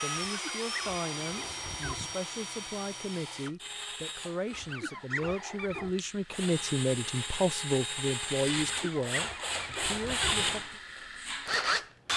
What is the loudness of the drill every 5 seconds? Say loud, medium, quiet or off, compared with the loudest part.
medium, medium, loud.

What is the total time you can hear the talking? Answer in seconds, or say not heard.
11 s.